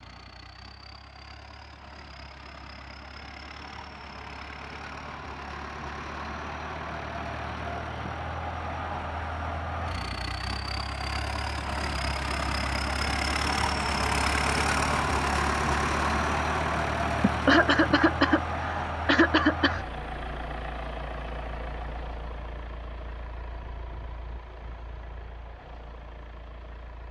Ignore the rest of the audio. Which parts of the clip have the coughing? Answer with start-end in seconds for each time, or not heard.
17.2-19.8.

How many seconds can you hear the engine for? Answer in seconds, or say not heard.
27 s.